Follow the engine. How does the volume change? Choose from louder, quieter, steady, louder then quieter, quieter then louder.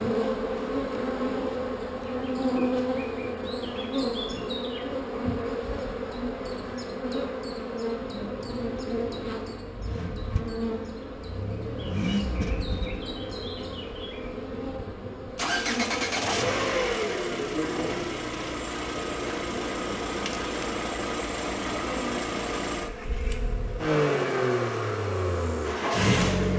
louder.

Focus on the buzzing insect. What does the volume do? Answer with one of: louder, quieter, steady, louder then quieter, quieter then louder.
quieter.